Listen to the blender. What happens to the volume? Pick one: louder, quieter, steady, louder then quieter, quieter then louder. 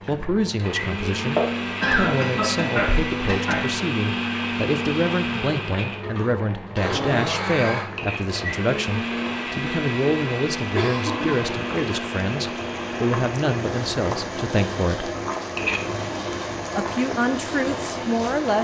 quieter.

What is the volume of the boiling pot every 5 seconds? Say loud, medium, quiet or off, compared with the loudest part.
loud, medium, loud, loud.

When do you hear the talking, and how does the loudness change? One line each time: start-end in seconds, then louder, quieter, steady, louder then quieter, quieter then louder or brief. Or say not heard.
0.1-15.2 steady
16.8-18.5 brief.